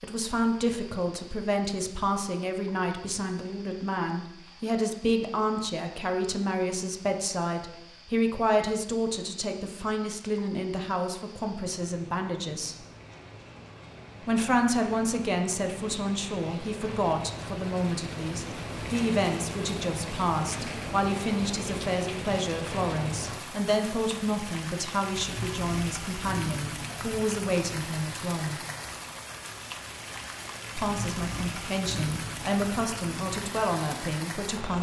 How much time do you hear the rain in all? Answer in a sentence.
You can hear the rain for 35 seconds altogether.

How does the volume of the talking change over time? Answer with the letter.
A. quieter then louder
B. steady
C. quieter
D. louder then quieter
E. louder
B.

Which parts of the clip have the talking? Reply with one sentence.
You can hear the talking from 0.0 to 12.8 s, from 14.2 to 28.6 s and from 30.8 to 34.7 s.